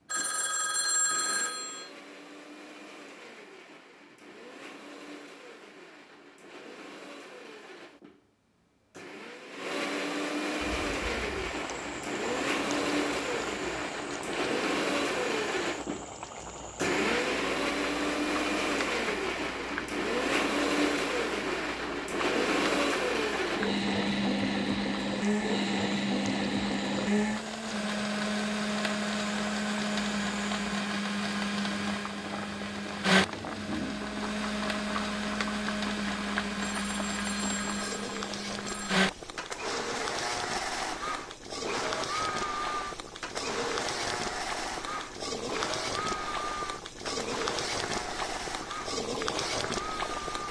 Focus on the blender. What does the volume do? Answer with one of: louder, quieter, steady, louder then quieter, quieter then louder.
louder then quieter.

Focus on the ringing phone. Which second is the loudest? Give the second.
1 s.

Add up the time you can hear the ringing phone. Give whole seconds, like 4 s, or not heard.
4 s.